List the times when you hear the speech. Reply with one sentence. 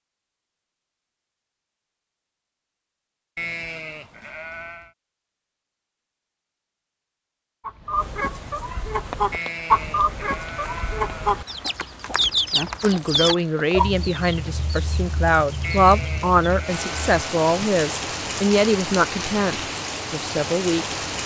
You can hear the speech from 12.8 to 21.0 s.